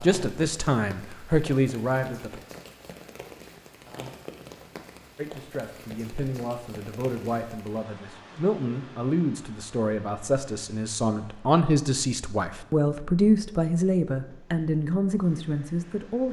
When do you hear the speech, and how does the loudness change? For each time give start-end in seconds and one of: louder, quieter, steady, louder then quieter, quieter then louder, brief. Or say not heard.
0.0-2.4 brief
5.2-16.2 louder.